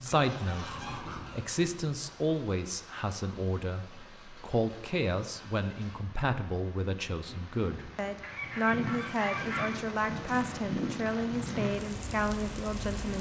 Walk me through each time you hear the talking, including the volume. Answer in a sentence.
The talking can be heard from 0.0 to 13.1 s, at a steady volume.